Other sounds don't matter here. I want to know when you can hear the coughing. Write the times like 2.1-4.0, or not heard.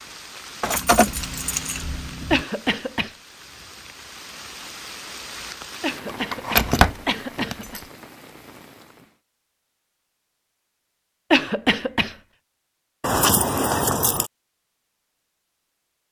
2.3-3.1, 5.8-7.8, 11.3-12.2.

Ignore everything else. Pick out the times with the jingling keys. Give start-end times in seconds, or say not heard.
0.6-2.5, 6.0-7.8, 13.0-14.3.